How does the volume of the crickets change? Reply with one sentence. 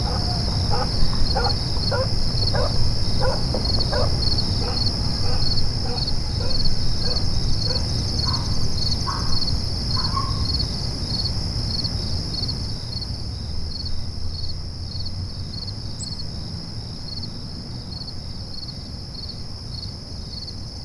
The volume of the crickets goes down.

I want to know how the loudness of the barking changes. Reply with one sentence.
The loudness of the barking goes down.